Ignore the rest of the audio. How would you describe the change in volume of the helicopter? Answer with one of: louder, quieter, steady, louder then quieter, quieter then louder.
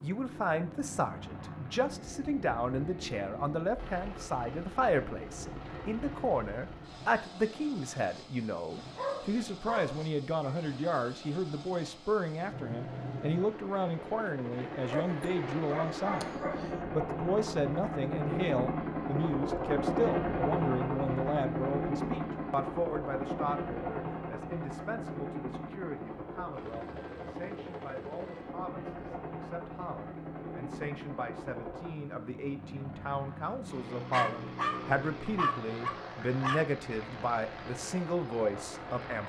louder then quieter.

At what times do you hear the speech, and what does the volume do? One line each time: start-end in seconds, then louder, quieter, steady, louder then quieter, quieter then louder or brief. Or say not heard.
0.0-39.2 quieter then louder.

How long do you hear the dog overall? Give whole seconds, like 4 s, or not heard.
6 s.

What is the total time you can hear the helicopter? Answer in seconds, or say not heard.
39 s.